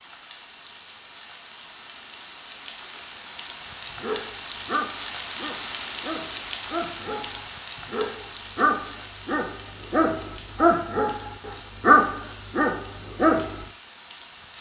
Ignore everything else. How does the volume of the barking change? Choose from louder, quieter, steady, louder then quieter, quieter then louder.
louder.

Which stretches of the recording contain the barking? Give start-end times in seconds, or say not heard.
3.9-13.7.